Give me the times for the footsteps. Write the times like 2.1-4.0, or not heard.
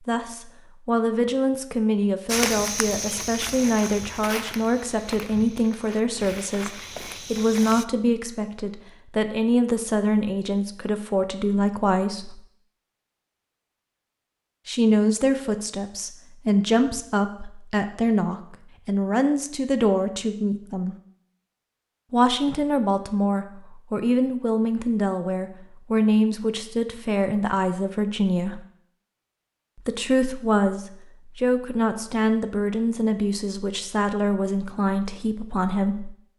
2.2-7.8.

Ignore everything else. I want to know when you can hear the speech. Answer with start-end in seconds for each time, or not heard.
0.1-12.4, 14.7-20.9, 22.1-28.6, 29.8-36.1.